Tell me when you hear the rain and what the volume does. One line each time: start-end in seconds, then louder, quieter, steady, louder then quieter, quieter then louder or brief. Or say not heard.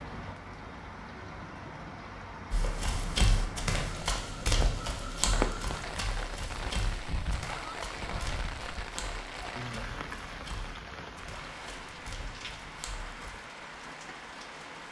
0.0-14.8 louder then quieter.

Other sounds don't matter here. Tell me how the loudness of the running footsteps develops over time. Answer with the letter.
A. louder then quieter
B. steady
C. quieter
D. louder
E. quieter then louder
C.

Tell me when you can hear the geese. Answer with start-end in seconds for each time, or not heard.
not heard.